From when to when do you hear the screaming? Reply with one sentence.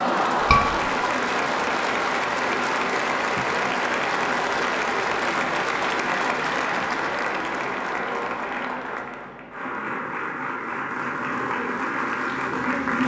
The screaming can be heard from 0.4 to 0.8 s.